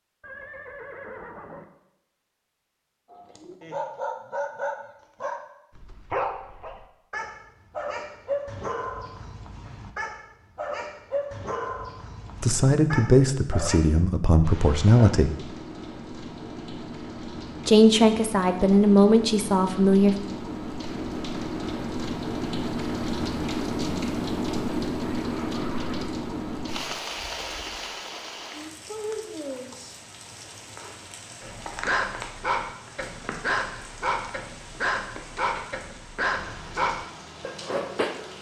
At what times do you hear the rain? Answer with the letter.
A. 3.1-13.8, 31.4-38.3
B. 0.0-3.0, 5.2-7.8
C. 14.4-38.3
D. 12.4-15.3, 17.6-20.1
C.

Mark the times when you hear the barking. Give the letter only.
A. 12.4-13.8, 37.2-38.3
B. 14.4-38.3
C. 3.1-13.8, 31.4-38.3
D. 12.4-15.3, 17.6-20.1
C.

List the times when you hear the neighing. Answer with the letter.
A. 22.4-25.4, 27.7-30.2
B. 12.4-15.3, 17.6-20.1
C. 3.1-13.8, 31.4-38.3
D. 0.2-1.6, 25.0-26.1
D.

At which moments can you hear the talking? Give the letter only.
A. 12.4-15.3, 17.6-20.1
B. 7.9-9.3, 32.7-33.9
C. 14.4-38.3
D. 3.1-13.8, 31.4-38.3
A.